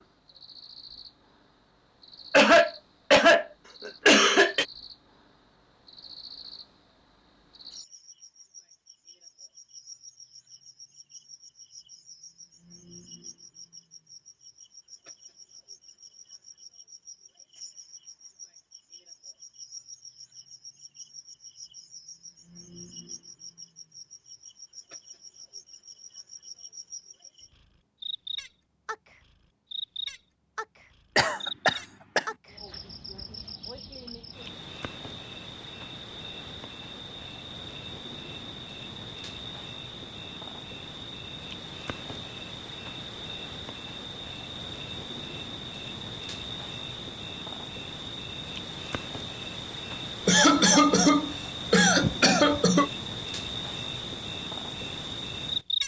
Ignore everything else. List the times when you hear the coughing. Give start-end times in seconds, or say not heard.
2.3-4.7, 31.1-32.2, 50.2-52.9.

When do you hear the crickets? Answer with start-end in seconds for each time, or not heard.
0.0-55.8.